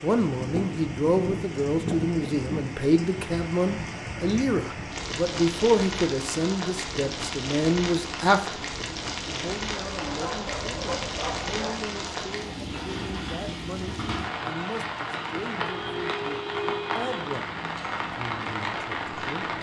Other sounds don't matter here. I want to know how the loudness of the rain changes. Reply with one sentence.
The volume of the rain stays about the same.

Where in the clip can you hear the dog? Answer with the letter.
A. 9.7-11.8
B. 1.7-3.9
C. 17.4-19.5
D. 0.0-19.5
A.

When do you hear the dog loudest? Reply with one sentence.
The volume of the dog peaks at 11 seconds.